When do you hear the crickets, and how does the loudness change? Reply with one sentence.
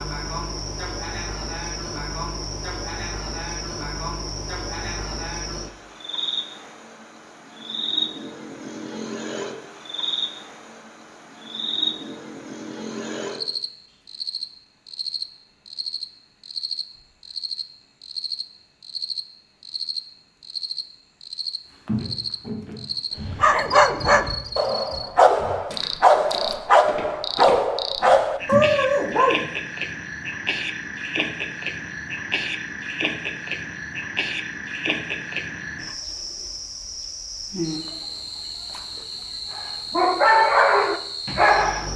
The crickets can be heard from 0.0 to 41.9 s, at a steady volume.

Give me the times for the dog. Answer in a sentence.
The dog can be heard from 23.3 to 29.4 s and from 39.5 to 41.9 s.